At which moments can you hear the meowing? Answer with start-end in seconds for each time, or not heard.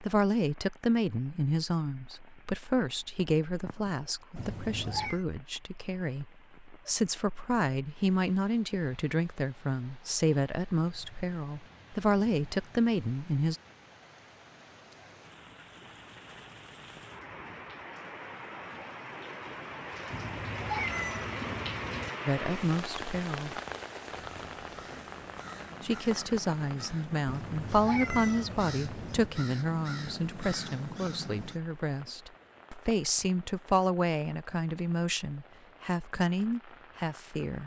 4.3-5.2, 20.1-22.1, 27.2-29.3.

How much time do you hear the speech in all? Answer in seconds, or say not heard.
27 s.